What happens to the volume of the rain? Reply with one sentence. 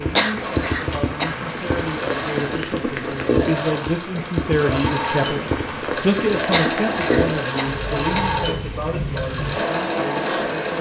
The volume of the rain stays about the same.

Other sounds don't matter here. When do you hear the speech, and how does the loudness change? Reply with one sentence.
The speech can be heard from 0.0 to 10.7 s, getting louder then quieter.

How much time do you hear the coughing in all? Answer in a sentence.
You can hear the coughing for 3 seconds altogether.